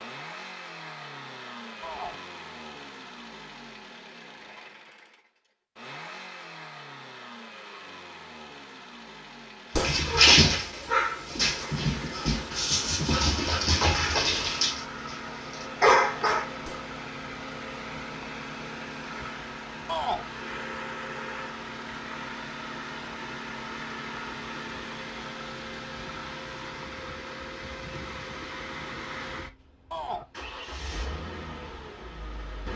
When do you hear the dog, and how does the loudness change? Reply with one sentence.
The dog can be heard from 9.8 to 16.4 s, getting quieter then louder.